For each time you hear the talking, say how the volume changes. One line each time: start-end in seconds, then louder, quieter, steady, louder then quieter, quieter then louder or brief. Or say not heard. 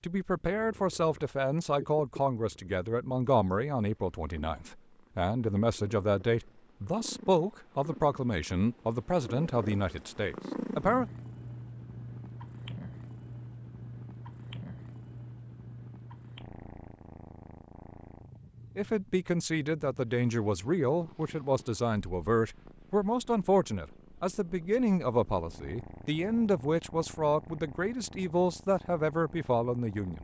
0.0-11.1 steady
18.8-30.2 steady.